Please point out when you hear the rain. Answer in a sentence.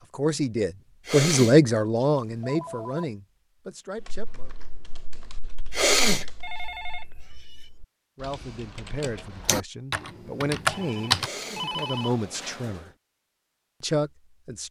You can't hear the rain here.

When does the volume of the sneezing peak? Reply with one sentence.
The volume of the sneezing peaks at 6 seconds.